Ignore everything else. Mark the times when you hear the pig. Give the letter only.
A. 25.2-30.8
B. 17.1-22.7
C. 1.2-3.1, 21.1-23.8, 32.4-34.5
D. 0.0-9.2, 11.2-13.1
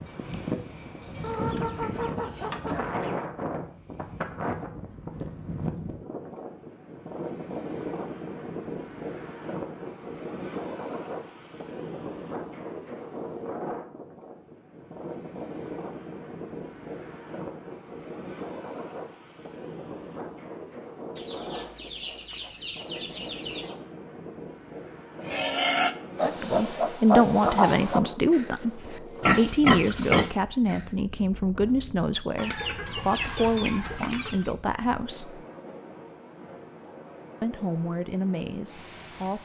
A.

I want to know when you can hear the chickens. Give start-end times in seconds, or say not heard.
1.2-3.1, 21.1-23.8, 32.4-34.5.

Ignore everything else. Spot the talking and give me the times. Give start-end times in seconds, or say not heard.
26.2-35.5, 37.4-39.3.